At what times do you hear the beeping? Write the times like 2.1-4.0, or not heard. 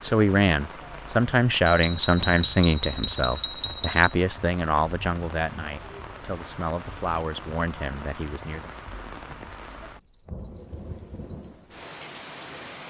1.6-4.2.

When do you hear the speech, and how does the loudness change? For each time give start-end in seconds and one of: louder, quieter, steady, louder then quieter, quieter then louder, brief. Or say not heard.
0.0-8.7 quieter.